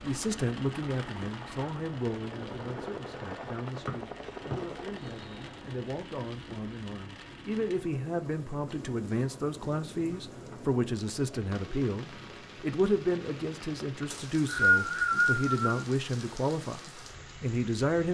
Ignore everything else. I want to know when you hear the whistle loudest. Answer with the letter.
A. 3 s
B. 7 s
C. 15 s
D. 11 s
C.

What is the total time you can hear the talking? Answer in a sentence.
The talking can be heard for 18 seconds in total.